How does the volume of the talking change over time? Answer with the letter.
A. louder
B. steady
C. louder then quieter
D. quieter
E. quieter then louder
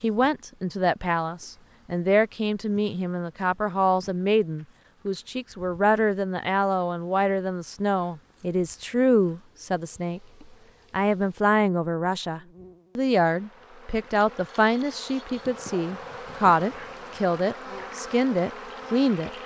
B.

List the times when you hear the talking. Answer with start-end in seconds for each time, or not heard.
0.0-10.2, 10.9-19.3.